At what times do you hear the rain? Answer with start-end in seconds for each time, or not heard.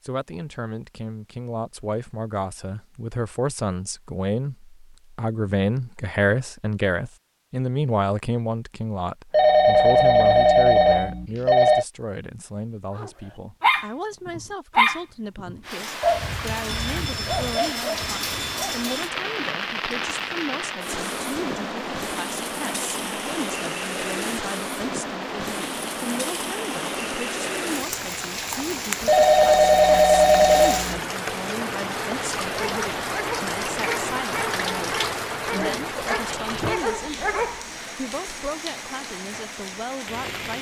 15.6-40.5.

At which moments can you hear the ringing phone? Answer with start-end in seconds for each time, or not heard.
9.3-11.8, 16.6-19.1, 29.1-31.0.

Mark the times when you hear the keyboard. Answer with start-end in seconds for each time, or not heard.
not heard.